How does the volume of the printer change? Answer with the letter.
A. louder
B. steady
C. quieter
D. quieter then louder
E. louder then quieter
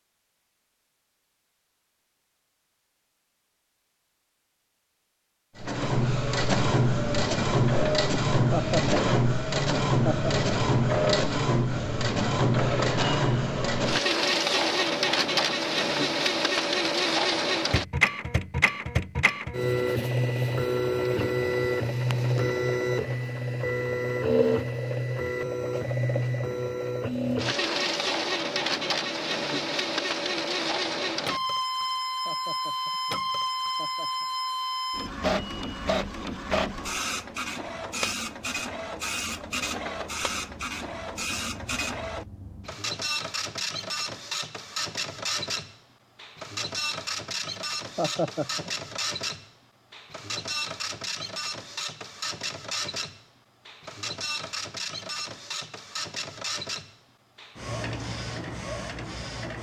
C.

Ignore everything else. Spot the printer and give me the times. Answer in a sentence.
The printer can be heard from 5.5 to 59.5 s.